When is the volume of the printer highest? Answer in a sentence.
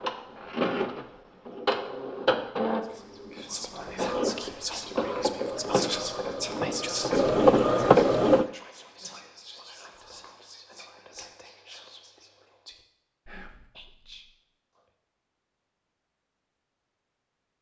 The loudest moment of the printer is at 8 seconds.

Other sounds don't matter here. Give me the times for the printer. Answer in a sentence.
The printer can be heard from 0.0 to 8.4 s.